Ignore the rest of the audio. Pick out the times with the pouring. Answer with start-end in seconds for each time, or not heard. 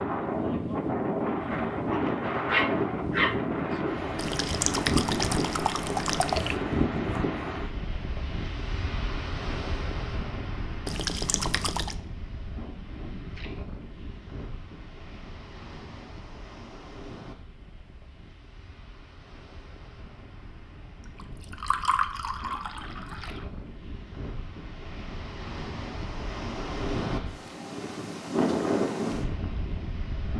4.2-6.6, 10.8-11.9, 21.1-23.4.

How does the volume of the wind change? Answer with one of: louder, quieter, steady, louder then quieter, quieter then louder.
quieter then louder.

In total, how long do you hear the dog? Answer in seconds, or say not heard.
2 s.